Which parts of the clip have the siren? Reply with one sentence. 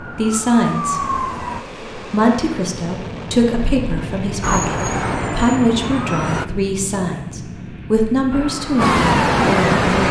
The siren can be heard from 0.0 to 1.6 s, from 4.4 to 6.5 s and from 8.3 to 10.0 s.